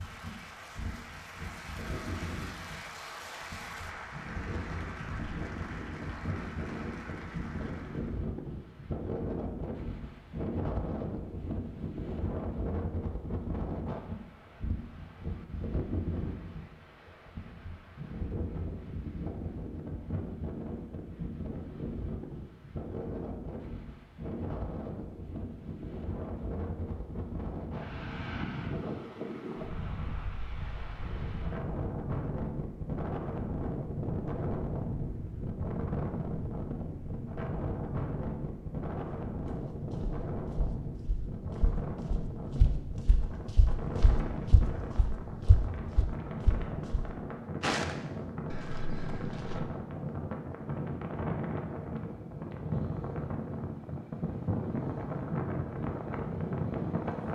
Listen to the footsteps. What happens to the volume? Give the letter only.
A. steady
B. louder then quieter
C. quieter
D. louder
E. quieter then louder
D.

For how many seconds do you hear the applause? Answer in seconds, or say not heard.
8 s.